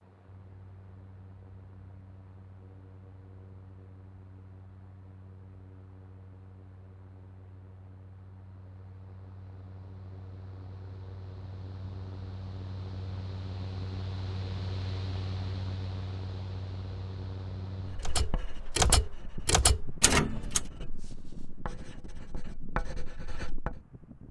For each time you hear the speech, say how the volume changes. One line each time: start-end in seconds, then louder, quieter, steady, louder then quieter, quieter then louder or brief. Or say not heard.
not heard.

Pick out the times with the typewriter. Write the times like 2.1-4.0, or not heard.
18.0-20.6.